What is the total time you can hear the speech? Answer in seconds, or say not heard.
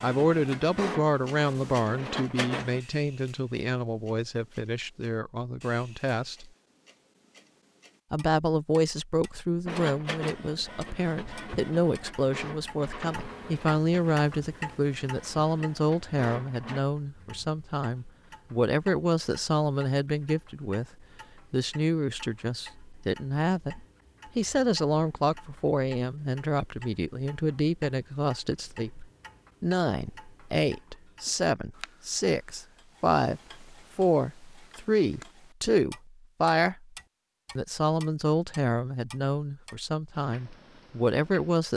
39 s.